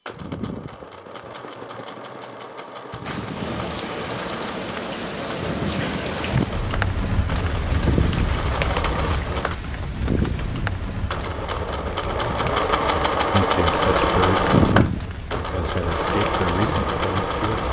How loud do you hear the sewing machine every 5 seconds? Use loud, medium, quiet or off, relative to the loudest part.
quiet, medium, loud, loud.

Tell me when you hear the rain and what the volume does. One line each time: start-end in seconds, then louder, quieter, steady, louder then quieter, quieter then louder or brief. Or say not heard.
3.0-17.6 quieter.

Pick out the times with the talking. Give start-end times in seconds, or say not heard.
13.3-17.6.